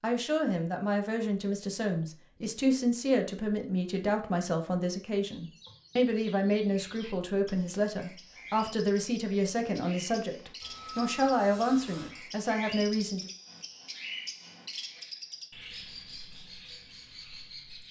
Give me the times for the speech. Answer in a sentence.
The speech can be heard from 0.0 to 13.2 s.